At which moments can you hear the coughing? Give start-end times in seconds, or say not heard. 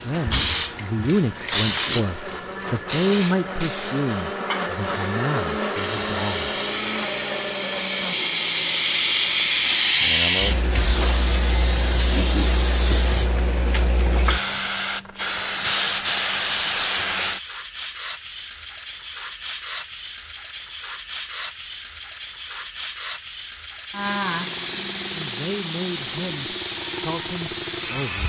not heard.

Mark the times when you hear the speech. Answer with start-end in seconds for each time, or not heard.
0.0-6.5, 25.1-28.2.